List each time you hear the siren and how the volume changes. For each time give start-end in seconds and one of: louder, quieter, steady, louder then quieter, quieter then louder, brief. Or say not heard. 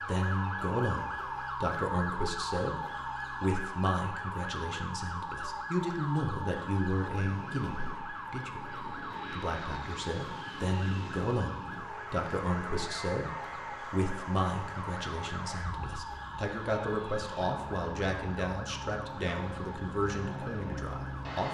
0.0-21.4 quieter.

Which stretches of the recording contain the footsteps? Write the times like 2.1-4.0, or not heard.
not heard.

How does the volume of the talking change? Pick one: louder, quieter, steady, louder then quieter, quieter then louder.
steady.